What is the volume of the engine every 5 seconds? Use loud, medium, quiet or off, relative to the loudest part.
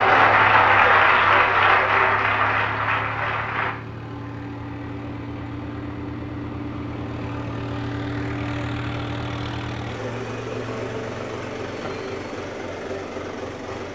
medium, loud, loud.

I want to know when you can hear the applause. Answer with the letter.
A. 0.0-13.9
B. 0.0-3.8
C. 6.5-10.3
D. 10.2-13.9
B.